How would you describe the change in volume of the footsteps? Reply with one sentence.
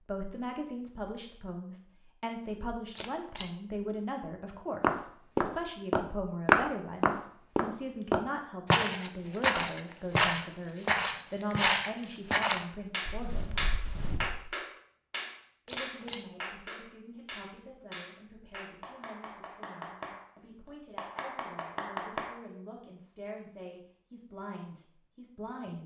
The loudness of the footsteps goes down.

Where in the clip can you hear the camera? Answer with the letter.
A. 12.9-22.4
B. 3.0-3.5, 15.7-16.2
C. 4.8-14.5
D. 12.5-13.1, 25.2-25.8
B.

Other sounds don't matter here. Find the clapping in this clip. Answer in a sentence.
The clapping can be heard from 12.9 to 22.4 s.